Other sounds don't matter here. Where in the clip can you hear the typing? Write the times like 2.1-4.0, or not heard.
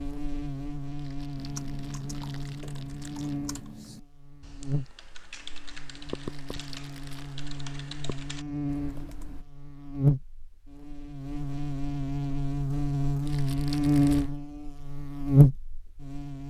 1.4-9.4.